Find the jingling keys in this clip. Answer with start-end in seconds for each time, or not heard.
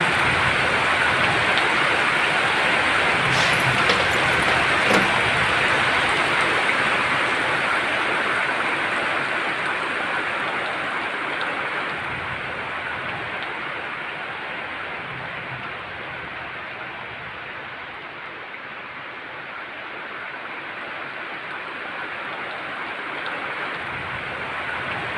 3.3-5.2.